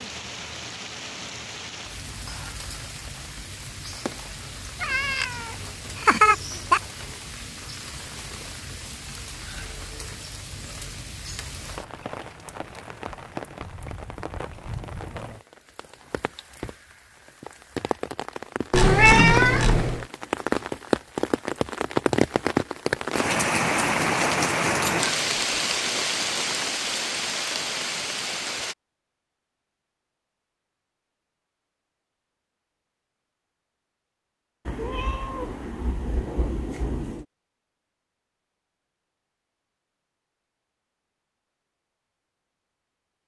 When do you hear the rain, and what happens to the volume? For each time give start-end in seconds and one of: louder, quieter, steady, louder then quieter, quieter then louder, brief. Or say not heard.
0.0-28.8 louder.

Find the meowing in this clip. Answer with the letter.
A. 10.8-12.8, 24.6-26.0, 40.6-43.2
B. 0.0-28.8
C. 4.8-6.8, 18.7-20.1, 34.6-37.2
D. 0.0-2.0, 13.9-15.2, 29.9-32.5
C.